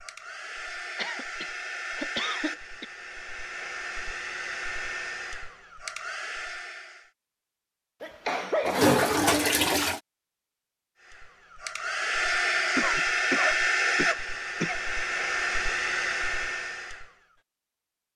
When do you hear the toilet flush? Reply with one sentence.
The toilet flush can be heard from 8.7 to 10.0 s.